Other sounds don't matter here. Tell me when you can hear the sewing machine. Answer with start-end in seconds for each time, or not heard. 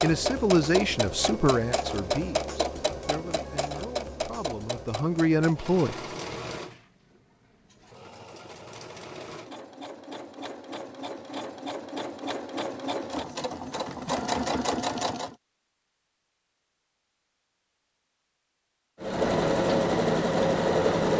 0.0-15.3, 19.0-21.1.